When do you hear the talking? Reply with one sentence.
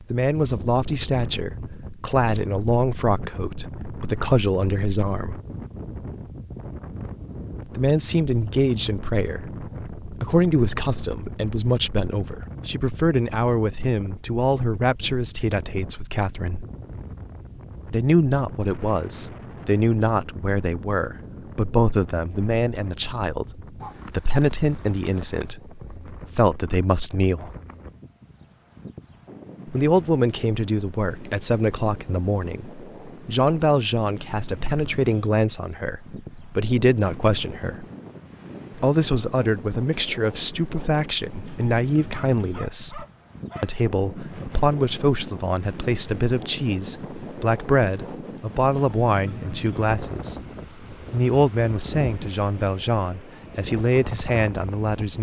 The talking can be heard from 0.0 to 5.4 s, from 7.7 to 16.6 s, from 17.9 to 27.5 s, from 29.6 to 37.9 s, from 38.8 to 50.4 s and from 51.1 to 55.1 s.